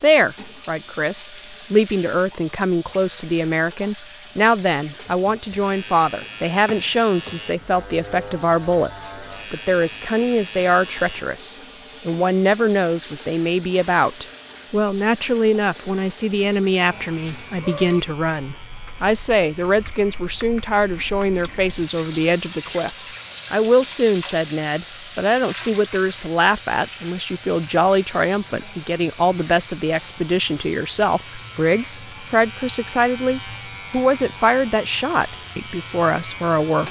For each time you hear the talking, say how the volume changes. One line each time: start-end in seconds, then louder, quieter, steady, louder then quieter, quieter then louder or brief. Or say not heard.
0.0-36.8 steady.